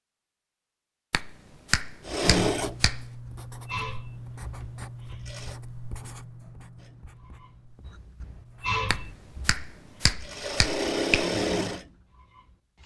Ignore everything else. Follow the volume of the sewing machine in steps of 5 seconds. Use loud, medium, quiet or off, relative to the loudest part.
loud, medium, loud.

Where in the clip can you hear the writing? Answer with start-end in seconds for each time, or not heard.
2.4-8.8.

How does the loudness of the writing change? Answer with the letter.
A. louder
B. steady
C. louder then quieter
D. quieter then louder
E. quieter
E.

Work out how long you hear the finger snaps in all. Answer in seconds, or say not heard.
4 s.